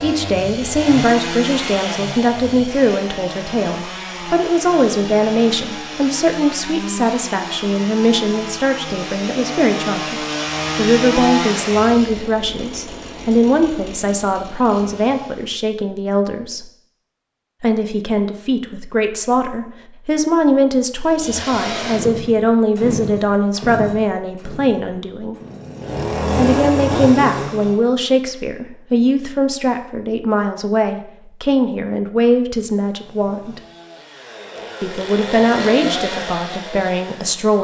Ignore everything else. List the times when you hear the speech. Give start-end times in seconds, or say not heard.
0.0-16.6, 17.6-25.4, 26.4-33.6, 34.8-37.5.